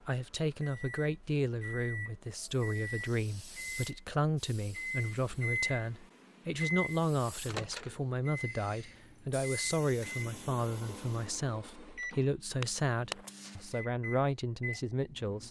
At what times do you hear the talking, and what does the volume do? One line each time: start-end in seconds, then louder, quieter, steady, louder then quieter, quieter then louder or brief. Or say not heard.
0.1-15.4 steady.